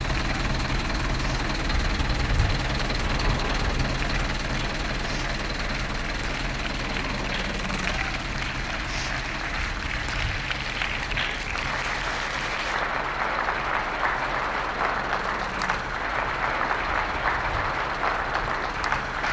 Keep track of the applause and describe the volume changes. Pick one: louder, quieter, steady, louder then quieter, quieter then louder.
louder.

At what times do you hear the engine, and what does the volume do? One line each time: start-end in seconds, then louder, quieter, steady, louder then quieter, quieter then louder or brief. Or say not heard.
0.0-19.2 quieter.